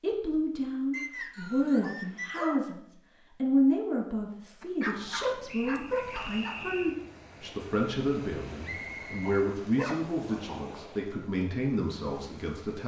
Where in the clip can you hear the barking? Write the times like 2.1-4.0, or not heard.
1.8-2.6, 4.6-6.6, 9.2-10.6.